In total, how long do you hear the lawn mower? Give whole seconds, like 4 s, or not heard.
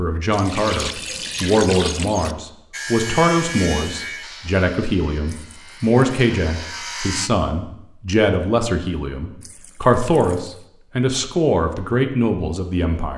not heard.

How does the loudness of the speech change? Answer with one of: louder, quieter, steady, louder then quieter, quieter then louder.
steady.